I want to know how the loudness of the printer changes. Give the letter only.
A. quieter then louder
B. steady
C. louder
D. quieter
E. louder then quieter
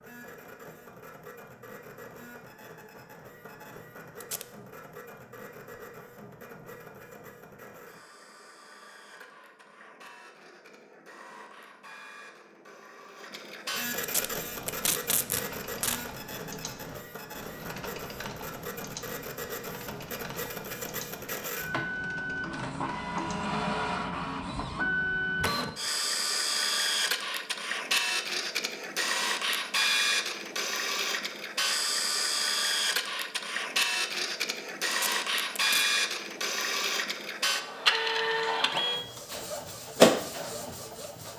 C.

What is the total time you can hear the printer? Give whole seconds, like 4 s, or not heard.
41 s.